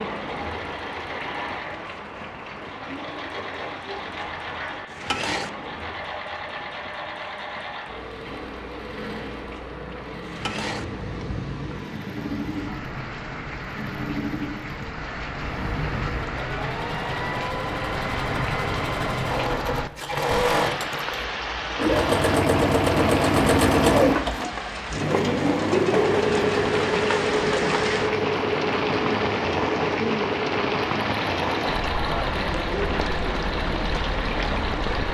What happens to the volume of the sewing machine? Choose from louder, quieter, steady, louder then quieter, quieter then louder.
louder then quieter.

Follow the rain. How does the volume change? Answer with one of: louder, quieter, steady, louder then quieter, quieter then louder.
louder.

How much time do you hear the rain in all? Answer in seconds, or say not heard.
35 s.